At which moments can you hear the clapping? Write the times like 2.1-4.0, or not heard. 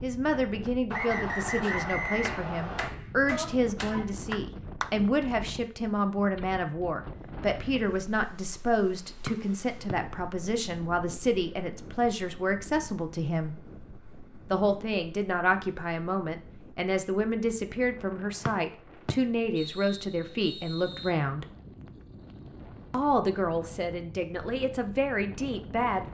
1.6-5.0.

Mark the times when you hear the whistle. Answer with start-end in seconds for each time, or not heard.
0.9-2.9, 9.2-9.9, 18.4-21.1.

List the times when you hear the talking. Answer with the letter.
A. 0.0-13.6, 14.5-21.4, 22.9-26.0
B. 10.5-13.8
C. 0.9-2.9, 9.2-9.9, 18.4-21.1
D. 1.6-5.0
A.